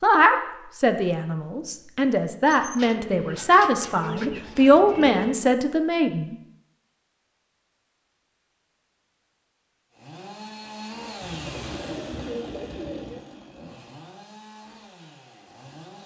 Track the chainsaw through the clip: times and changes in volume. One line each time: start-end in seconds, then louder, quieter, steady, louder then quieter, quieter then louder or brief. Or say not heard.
9.9-16.0 quieter.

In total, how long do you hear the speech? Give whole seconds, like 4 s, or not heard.
6 s.